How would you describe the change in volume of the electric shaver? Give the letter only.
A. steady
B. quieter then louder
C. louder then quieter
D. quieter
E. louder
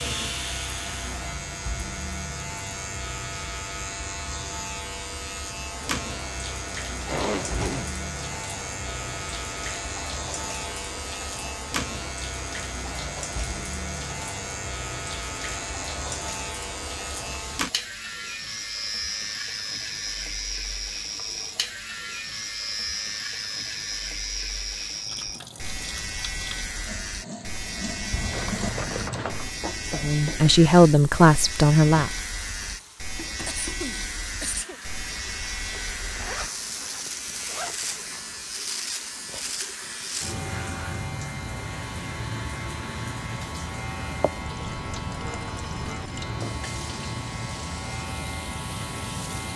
A.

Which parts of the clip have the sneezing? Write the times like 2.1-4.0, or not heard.
33.5-34.8.